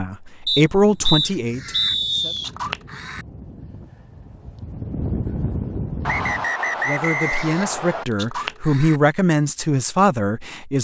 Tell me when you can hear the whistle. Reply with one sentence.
You can hear the whistle from 0.5 to 2.5 s and from 6.0 to 8.1 s.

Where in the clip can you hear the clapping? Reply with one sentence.
The clapping can't be heard in this clip.